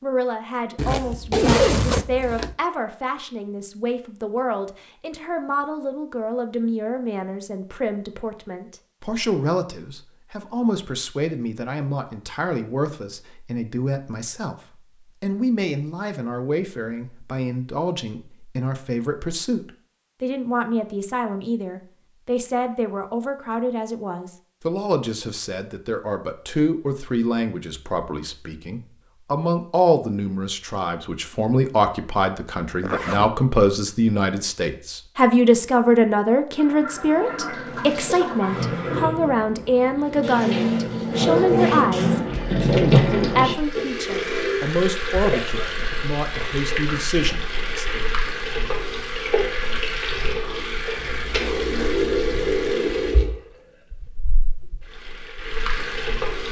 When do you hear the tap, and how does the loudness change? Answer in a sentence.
The tap can be heard from 36.5 to 56.4 s, getting louder then quieter.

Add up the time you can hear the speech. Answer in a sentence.
The speech can be heard for 48 seconds in total.